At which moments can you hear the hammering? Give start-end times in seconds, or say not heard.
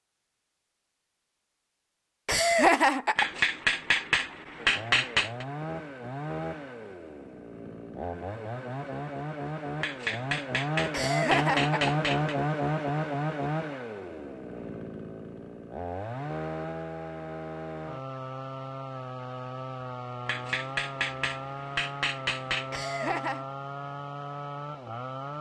3.1-5.5, 9.8-12.3, 20.2-22.8.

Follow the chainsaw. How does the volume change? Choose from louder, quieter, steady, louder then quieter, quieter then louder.
louder then quieter.